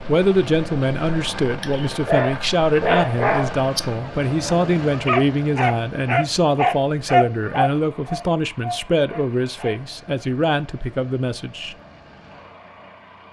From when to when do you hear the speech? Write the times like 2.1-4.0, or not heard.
0.1-11.8.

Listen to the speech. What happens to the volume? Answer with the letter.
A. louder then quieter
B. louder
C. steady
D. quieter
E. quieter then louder
C.